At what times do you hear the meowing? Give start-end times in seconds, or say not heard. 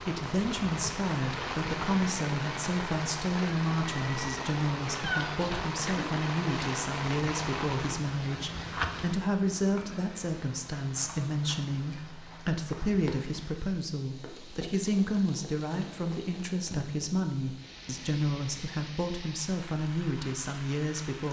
4.8-6.1.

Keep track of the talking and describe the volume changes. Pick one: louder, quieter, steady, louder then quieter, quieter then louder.
steady.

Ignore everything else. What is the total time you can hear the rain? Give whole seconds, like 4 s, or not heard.
21 s.